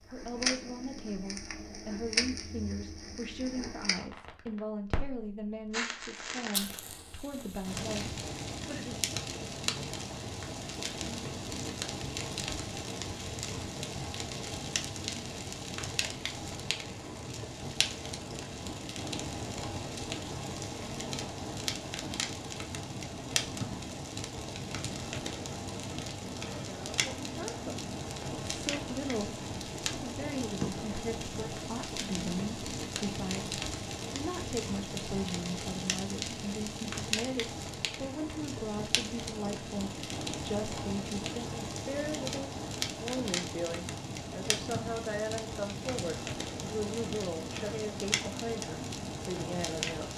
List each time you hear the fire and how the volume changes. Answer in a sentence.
You can hear the fire from 0.0 to 50.1 s, at a steady volume.